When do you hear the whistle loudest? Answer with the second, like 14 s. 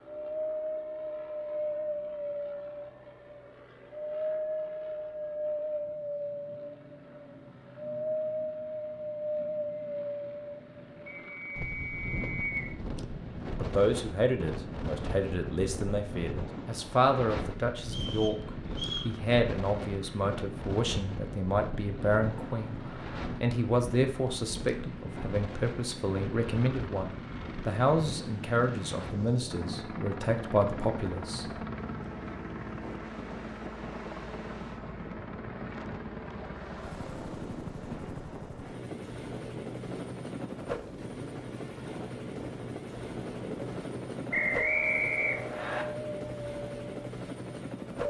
45 s.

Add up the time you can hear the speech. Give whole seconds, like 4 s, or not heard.
18 s.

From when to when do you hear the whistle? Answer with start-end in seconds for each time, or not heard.
11.1-12.8, 17.9-19.1, 44.3-45.9.